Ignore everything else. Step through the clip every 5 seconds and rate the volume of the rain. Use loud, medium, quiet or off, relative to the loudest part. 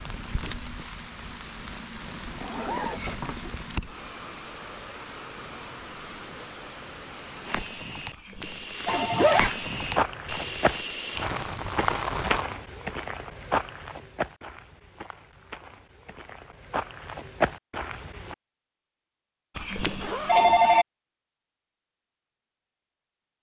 medium, loud, loud, off, off.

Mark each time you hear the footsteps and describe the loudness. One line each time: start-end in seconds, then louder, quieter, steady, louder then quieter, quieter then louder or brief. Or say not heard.
9.7-18.4 quieter then louder.